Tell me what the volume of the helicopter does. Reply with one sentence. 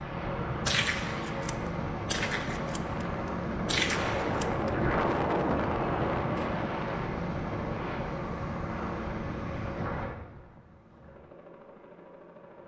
The loudness of the helicopter goes down.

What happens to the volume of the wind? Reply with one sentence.
The volume of the wind goes up, then down.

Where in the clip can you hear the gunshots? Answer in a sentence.
The gunshots can be heard from 0.7 to 4.7 s.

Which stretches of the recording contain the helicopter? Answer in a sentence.
You can hear the helicopter from 0.0 to 12.6 s.